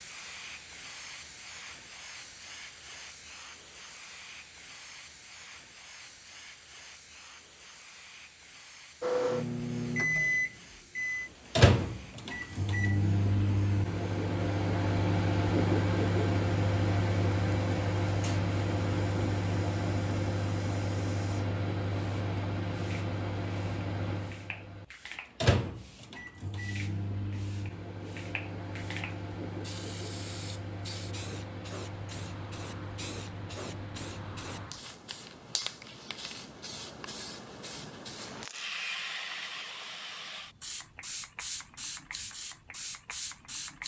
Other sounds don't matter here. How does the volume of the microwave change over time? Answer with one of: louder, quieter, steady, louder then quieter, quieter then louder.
quieter.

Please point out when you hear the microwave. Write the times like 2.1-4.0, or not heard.
9.0-34.7.